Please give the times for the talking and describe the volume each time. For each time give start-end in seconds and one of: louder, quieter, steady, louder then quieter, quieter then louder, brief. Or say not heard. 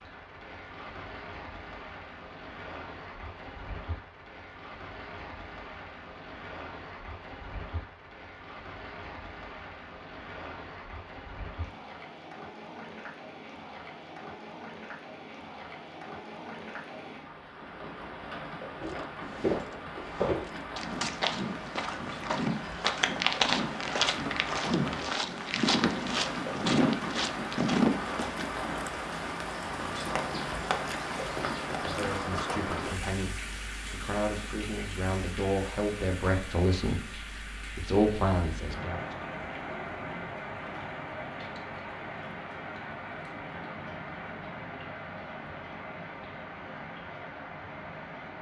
31.8-39.2 louder.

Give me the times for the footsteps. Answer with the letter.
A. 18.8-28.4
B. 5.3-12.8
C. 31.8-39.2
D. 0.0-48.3
A.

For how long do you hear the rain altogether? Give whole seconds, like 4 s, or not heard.
48 s.